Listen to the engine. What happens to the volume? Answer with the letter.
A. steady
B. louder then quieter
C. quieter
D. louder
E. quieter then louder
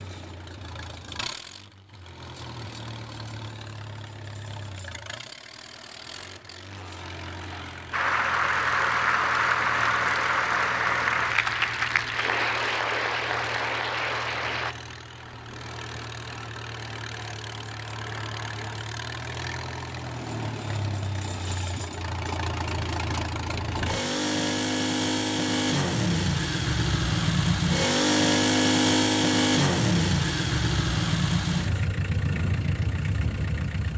D.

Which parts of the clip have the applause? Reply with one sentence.
You can hear the applause from 7.9 to 14.8 s.